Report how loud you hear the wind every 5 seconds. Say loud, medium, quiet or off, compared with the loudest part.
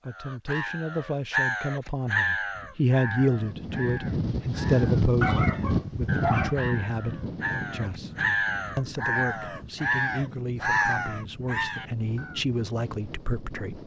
loud, loud, quiet.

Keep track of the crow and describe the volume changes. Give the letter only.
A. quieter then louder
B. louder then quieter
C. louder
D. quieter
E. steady
A.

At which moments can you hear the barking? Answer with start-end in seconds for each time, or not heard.
5.2-6.6.